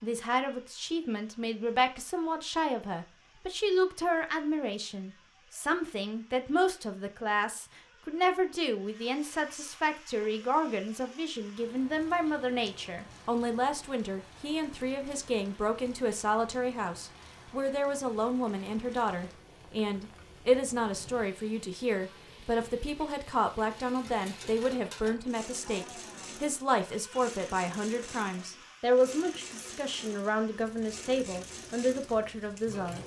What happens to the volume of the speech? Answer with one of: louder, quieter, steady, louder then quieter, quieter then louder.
steady.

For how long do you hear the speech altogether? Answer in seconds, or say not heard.
33 s.